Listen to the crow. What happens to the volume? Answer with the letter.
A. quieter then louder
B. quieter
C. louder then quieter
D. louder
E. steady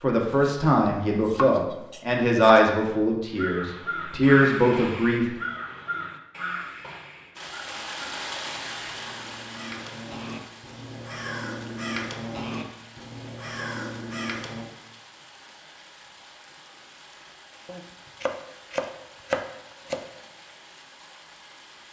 A.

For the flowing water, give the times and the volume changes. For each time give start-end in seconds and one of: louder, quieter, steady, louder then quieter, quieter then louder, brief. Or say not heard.
7.3-21.8 quieter.